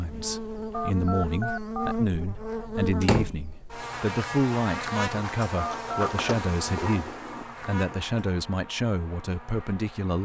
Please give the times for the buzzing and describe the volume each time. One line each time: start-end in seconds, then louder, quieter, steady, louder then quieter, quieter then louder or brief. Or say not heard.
0.0-10.1 quieter.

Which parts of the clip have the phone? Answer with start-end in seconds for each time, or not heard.
0.7-1.9, 5.5-6.1.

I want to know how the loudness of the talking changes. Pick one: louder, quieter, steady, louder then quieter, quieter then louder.
steady.